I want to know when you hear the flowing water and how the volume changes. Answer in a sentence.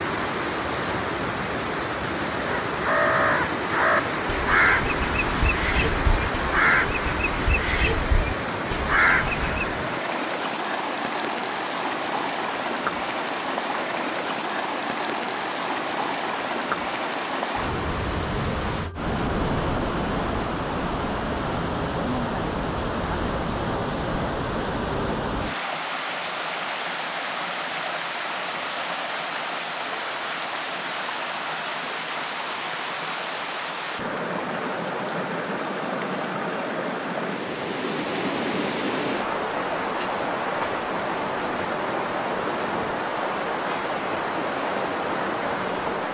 You can hear the flowing water from 0.0 to 46.0 s, at a steady volume.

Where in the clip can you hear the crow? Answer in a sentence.
You can hear the crow from 2.4 to 9.7 s.